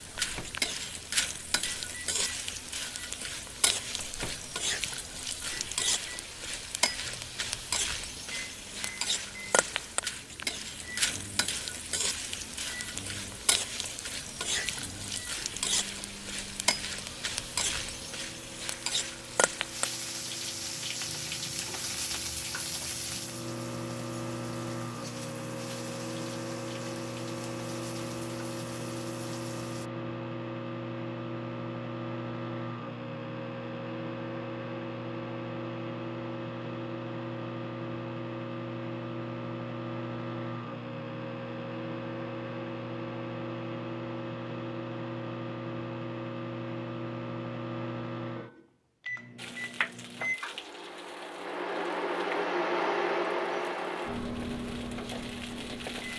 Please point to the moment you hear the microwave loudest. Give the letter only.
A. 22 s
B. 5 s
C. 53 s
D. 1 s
C.